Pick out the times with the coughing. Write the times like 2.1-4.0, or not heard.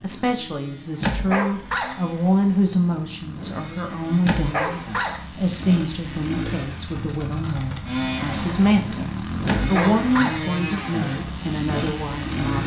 not heard.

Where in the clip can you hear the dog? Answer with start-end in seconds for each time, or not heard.
1.0-1.9, 4.2-5.2, 9.4-10.4.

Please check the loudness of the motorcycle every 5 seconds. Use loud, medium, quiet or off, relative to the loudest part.
medium, loud, loud.